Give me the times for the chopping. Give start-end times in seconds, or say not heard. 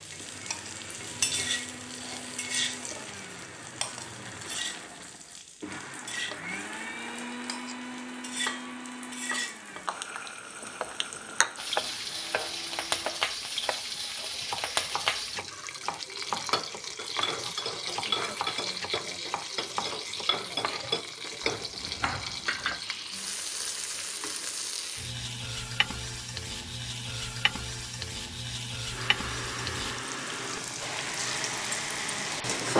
10.8-22.9.